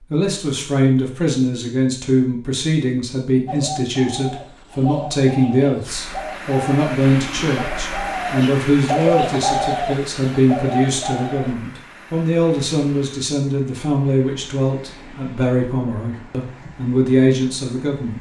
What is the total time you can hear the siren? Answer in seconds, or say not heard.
not heard.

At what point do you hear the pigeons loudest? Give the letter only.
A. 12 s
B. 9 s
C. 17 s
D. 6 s
B.